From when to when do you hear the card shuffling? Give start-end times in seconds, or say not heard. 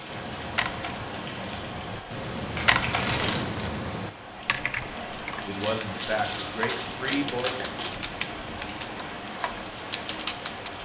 2.5-3.5, 5.5-8.1.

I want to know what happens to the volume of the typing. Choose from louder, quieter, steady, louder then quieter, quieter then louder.
louder then quieter.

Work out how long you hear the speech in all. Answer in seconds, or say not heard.
2 s.